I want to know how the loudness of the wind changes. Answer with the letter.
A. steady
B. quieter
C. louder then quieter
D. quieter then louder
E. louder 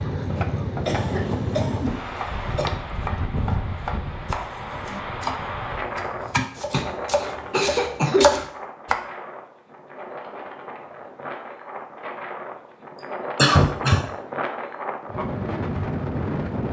D.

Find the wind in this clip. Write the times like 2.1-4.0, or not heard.
0.0-16.6.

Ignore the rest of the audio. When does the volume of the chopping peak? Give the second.
8 s.